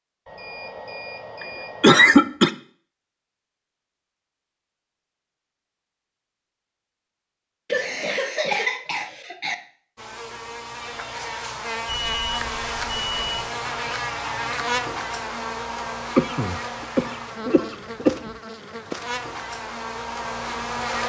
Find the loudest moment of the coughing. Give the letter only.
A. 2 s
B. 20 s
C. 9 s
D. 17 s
A.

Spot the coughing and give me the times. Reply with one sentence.
The coughing can be heard from 1.4 to 2.5 s, from 7.7 to 9.6 s and from 16.1 to 18.1 s.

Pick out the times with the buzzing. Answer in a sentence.
You can hear the buzzing from 9.9 to 21.0 s.